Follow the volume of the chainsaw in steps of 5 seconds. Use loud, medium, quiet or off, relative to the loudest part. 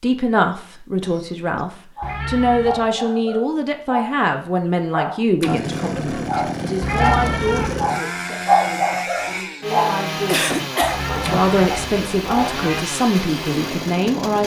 off, loud, loud.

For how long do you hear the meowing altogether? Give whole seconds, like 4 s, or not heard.
4 s.